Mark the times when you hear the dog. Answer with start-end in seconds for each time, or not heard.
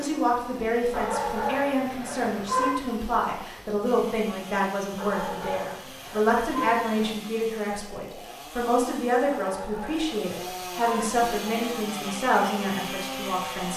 0.9-2.8, 5.0-7.2, 9.3-11.7.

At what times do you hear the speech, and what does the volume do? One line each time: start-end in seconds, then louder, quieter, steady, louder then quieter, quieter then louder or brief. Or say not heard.
0.0-13.7 steady.